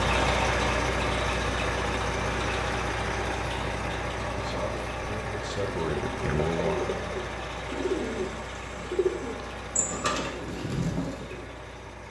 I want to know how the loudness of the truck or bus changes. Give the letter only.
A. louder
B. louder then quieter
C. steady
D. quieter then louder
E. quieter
E.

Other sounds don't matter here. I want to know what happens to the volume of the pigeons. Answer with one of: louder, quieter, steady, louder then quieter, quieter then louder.
steady.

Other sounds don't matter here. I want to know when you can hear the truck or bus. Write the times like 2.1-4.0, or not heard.
0.0-12.0.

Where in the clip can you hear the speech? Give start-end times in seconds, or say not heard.
4.3-7.2.